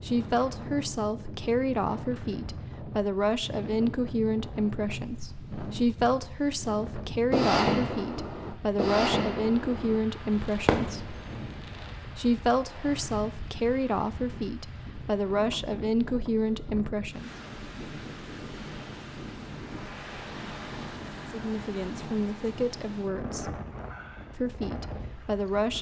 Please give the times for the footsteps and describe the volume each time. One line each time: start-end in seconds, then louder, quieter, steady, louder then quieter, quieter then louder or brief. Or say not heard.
not heard.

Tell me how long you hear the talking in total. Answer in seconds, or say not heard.
20 s.